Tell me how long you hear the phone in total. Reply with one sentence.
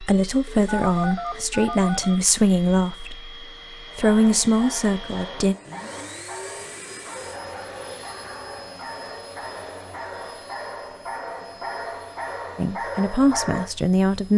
You can hear the phone for 2 seconds altogether.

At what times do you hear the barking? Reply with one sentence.
The barking can be heard from 3.9 to 13.7 s.